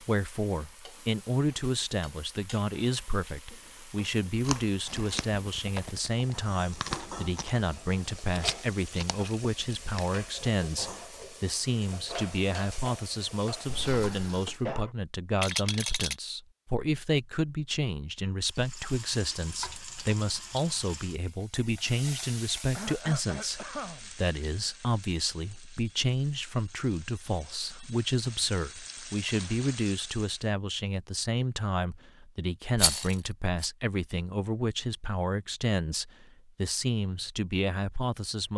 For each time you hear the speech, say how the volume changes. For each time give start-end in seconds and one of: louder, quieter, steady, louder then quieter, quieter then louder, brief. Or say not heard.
0.0-38.5 steady.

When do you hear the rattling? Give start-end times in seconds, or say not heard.
8.3-10.2, 15.3-16.1, 32.8-33.7.